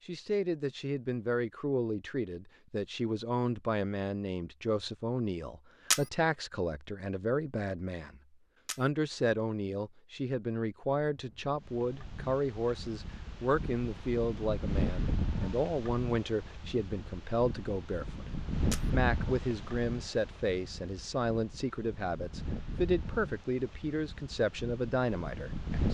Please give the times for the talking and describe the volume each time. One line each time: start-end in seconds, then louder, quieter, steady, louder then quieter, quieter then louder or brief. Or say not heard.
0.1-25.8 steady.